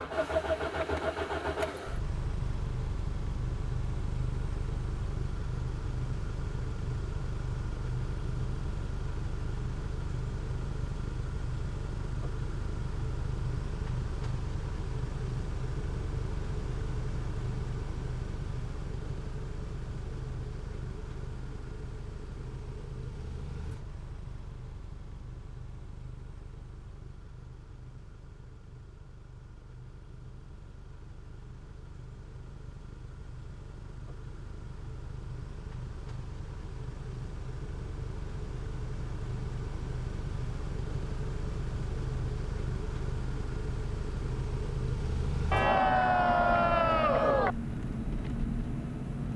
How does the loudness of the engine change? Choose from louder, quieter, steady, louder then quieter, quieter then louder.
quieter then louder.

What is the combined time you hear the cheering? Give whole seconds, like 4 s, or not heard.
2 s.